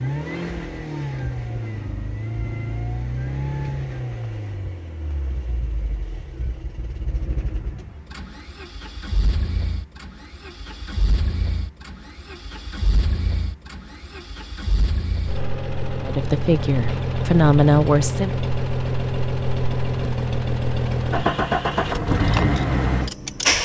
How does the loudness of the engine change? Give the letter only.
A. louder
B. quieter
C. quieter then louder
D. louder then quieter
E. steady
C.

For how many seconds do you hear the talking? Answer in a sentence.
You can hear the talking for 2 seconds altogether.